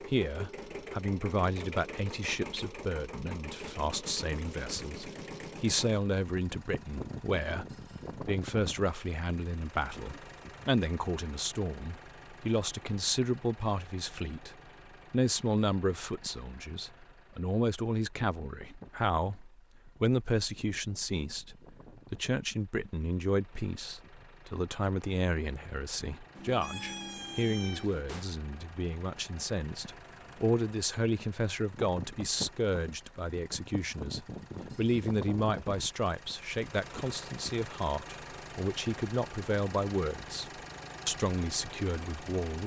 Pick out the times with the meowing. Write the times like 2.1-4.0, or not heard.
26.4-28.2.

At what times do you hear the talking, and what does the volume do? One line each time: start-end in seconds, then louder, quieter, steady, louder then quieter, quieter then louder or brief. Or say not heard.
0.1-42.6 steady.